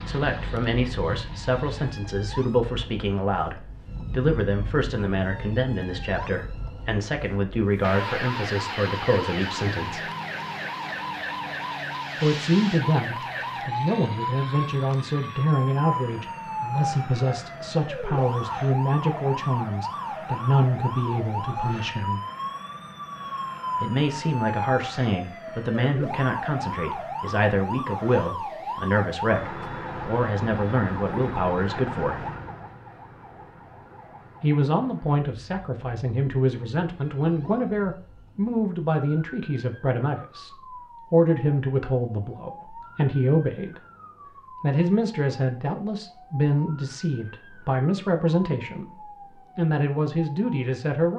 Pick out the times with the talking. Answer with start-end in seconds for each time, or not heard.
0.1-10.1, 12.2-22.2, 23.8-32.3, 34.4-43.8, 44.6-51.1.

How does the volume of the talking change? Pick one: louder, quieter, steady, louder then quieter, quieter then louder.
steady.